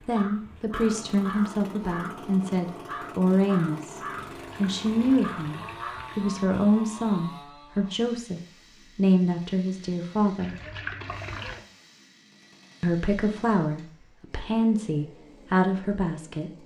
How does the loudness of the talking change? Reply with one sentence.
The volume of the talking stays about the same.